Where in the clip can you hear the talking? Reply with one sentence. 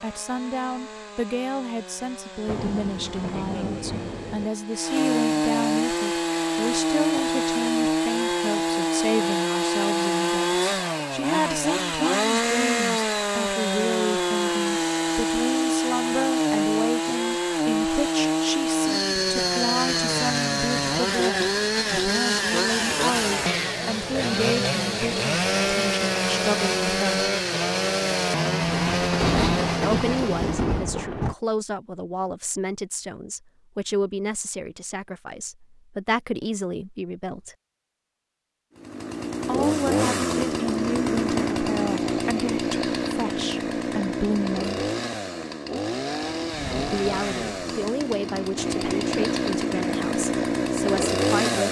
You can hear the talking from 0.0 to 27.2 s, from 29.8 to 37.5 s, from 39.5 to 44.8 s and from 46.9 to 51.6 s.